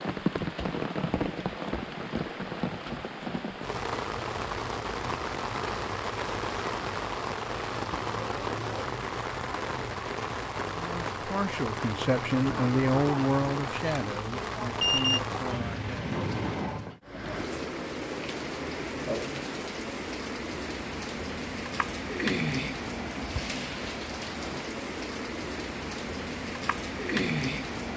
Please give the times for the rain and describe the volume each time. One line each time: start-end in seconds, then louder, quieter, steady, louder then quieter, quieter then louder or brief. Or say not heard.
0.0-27.9 steady.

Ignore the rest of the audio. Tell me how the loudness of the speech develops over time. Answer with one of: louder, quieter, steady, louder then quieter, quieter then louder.
louder then quieter.